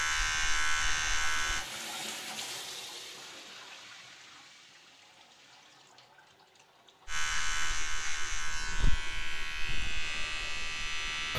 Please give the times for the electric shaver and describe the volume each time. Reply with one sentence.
The electric shaver can be heard briefly from 0.0 to 1.6 s; and from 7.0 to 11.3 s, at a steady volume.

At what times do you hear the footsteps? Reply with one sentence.
You can't hear the footsteps here.